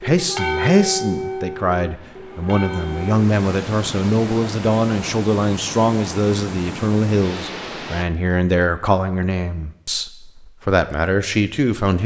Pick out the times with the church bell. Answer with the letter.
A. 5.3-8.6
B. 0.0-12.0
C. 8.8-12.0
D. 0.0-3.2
D.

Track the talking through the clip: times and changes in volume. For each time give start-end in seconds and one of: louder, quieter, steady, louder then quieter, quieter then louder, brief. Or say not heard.
0.0-12.0 steady.